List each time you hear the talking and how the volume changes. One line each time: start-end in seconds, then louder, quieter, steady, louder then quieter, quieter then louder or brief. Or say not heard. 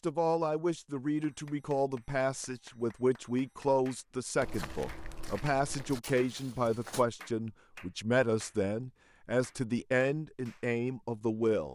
0.0-11.7 steady.